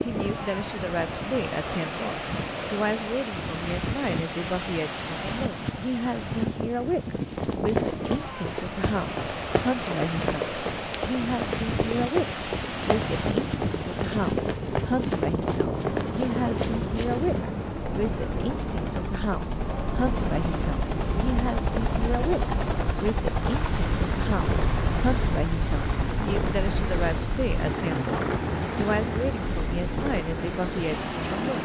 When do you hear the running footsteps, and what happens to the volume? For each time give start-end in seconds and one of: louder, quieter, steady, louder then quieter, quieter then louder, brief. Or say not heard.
7.3-17.4 steady.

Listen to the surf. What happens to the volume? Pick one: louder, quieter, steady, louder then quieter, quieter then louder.
steady.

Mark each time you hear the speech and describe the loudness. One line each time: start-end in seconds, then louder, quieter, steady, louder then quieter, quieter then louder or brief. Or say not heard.
0.0-31.6 steady.